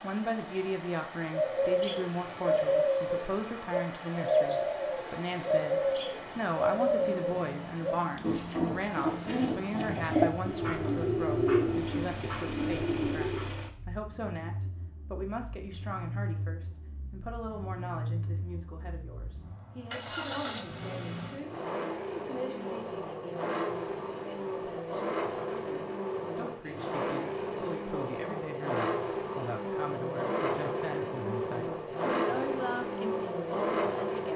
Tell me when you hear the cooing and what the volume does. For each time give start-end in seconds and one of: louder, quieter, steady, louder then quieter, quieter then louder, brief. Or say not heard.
1.3-13.6 steady.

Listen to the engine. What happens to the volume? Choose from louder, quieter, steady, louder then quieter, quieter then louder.
louder.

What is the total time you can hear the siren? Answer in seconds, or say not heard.
not heard.